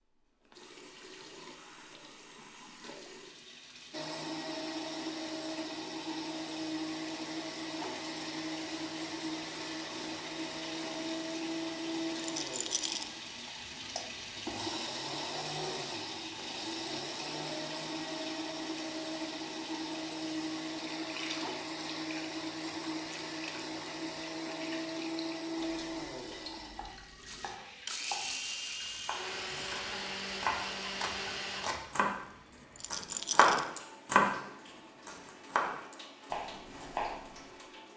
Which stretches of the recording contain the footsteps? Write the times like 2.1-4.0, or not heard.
not heard.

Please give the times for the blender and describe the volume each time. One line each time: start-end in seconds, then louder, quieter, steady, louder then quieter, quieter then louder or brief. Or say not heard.
3.9-31.7 steady.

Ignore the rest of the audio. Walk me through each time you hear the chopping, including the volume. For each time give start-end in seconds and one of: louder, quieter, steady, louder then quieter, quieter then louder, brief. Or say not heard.
26.8-37.5 louder then quieter.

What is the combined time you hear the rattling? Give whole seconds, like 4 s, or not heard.
2 s.